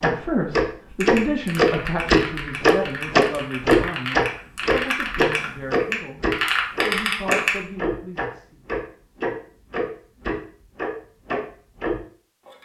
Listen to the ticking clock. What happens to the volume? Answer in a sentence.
The volume of the ticking clock goes down.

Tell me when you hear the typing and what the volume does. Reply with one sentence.
You can hear the typing from 1.0 to 7.6 s, getting louder.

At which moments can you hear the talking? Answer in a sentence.
You can hear the talking from 0.0 to 8.6 s.